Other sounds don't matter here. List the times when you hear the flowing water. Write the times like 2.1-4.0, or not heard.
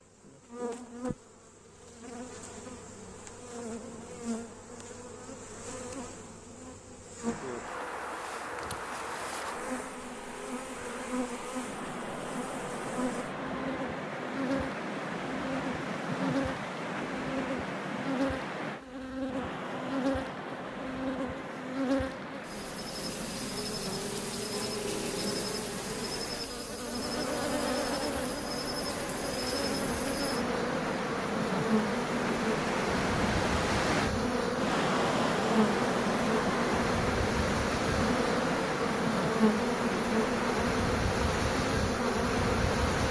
7.2-43.0.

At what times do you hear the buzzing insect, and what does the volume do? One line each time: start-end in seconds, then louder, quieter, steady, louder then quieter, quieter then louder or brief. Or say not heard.
0.0-43.0 louder.